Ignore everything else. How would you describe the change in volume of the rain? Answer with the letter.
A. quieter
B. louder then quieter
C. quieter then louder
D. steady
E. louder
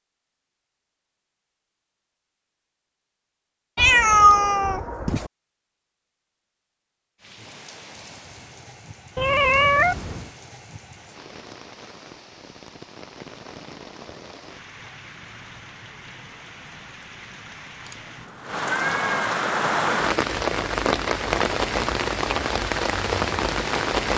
E.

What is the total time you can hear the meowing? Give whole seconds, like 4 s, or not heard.
4 s.